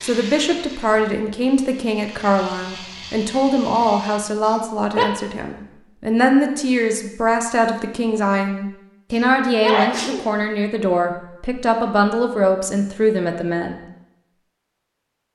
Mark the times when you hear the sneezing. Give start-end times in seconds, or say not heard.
4.4-5.0, 9.1-10.2.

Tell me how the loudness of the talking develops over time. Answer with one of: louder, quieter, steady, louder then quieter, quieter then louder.
steady.